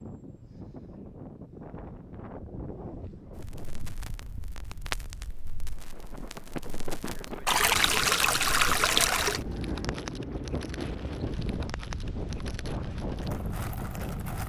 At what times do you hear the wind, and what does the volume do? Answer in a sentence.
The wind can be heard from 0.0 to 14.4 s, getting quieter then louder.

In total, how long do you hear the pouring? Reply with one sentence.
The pouring can be heard for 2 seconds in total.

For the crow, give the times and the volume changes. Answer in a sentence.
You can't hear the crow here.